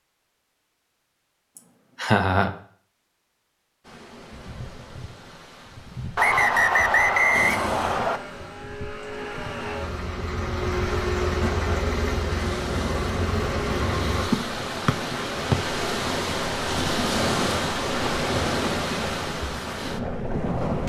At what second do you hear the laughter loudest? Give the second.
2 s.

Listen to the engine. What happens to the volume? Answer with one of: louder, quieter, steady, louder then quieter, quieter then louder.
louder.